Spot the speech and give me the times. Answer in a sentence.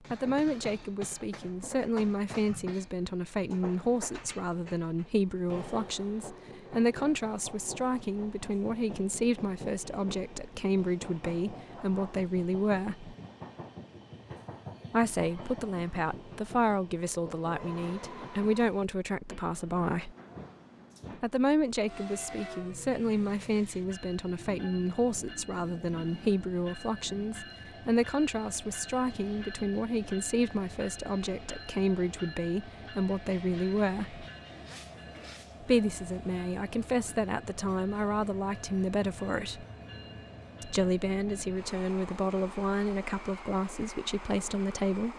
You can hear the speech from 0.1 to 13.2 s, from 14.9 to 20.1 s, from 21.2 to 34.2 s, from 35.6 to 39.6 s and from 40.6 to 45.1 s.